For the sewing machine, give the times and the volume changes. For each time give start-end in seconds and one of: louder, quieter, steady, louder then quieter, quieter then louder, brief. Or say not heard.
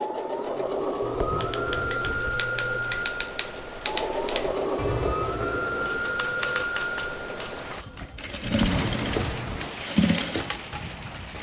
0.0-11.3 steady.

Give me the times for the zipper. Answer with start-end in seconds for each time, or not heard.
1.0-3.0, 8.4-9.6.